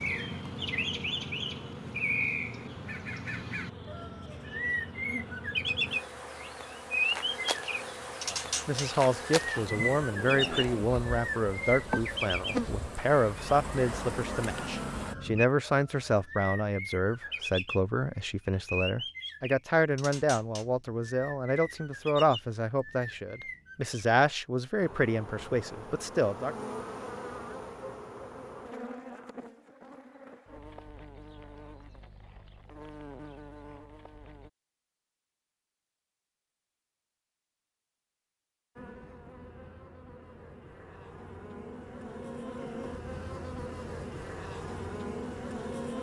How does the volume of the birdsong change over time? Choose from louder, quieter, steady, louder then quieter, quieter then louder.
quieter.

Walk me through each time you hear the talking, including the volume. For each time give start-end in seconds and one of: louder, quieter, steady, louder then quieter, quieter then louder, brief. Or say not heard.
8.3-26.6 steady.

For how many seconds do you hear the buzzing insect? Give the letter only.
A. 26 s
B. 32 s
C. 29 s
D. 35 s
B.